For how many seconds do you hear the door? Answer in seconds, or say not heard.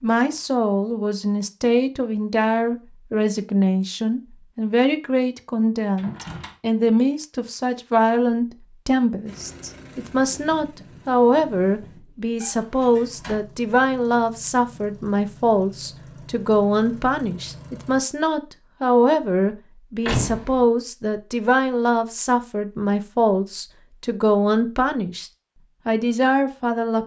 2 s.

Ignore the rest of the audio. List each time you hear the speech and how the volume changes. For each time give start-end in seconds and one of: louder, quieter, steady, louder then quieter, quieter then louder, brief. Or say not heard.
0.0-27.0 steady.